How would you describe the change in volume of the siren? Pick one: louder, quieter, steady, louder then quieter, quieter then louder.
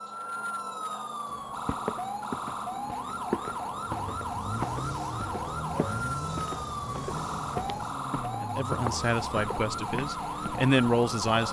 steady.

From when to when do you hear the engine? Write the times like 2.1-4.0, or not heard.
4.0-11.4.